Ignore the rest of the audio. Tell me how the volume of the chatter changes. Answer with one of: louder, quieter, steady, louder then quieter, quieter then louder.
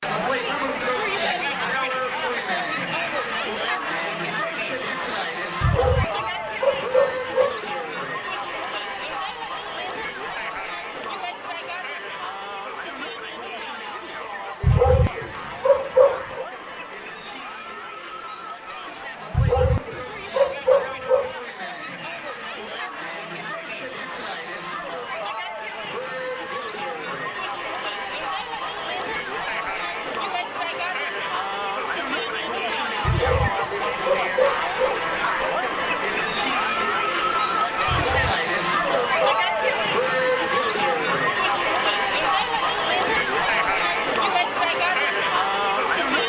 quieter then louder.